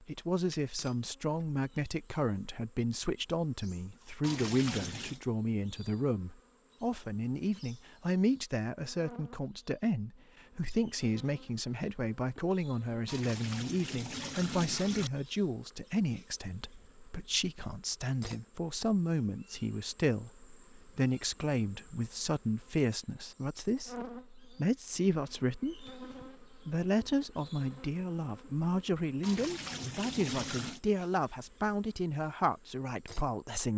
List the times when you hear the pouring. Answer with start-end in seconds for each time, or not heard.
4.2-5.2, 13.1-15.1, 29.2-30.8.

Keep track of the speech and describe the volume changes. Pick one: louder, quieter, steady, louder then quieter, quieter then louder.
steady.